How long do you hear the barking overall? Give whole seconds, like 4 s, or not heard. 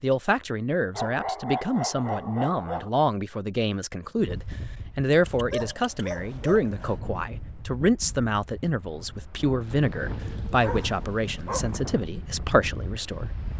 5 s.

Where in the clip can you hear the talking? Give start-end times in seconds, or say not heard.
0.0-13.5.